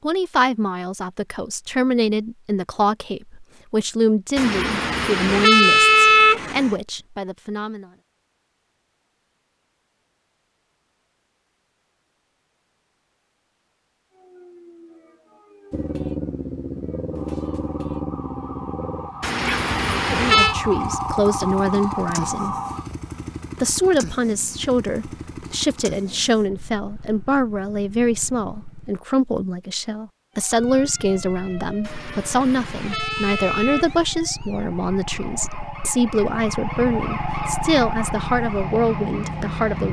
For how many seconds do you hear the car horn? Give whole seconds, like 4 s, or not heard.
6 s.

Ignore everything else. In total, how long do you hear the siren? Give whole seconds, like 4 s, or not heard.
18 s.